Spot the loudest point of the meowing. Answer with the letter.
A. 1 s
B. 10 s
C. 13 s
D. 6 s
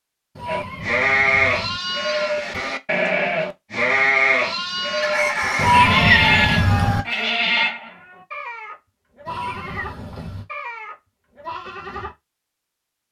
D.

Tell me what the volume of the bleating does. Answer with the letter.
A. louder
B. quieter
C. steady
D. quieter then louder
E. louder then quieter
B.